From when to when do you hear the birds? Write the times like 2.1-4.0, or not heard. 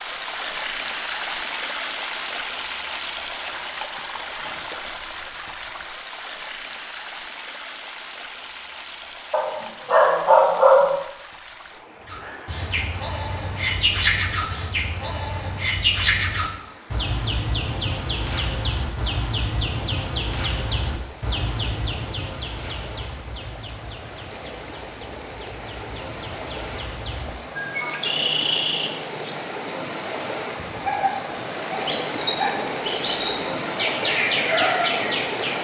12.1-35.5.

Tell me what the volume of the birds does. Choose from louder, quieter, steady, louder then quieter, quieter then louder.
quieter then louder.